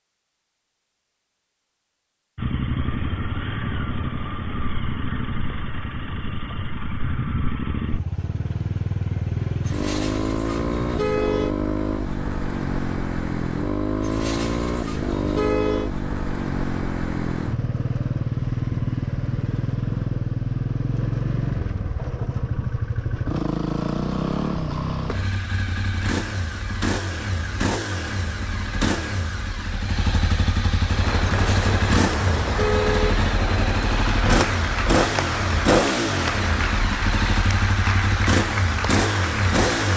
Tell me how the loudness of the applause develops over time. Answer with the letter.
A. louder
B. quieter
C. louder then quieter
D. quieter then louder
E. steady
E.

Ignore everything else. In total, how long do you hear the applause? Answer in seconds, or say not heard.
9 s.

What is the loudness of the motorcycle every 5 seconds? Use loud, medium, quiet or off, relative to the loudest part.
medium, medium, loud, loud, loud, medium, loud, loud.